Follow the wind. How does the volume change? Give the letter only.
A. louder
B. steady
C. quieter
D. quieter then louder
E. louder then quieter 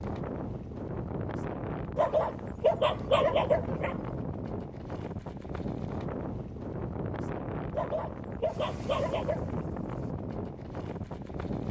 B.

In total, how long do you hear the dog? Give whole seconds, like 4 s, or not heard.
4 s.